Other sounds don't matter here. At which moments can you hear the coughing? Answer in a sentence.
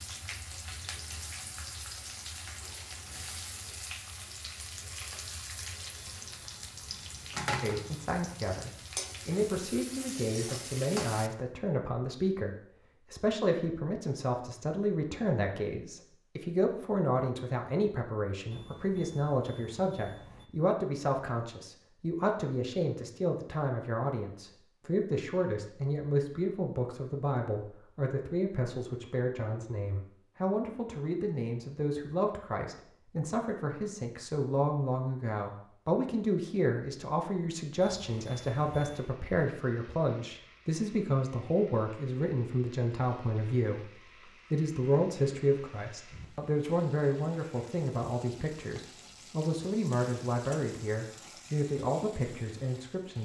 You can't hear the coughing here.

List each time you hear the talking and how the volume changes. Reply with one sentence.
The talking can be heard from 7.6 to 53.2 s, at a steady volume.